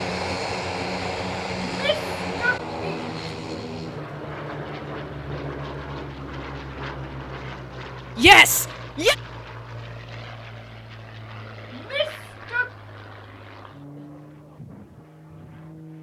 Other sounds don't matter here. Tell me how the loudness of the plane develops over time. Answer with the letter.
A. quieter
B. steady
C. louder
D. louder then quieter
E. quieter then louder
A.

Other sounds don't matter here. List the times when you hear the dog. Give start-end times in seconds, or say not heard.
not heard.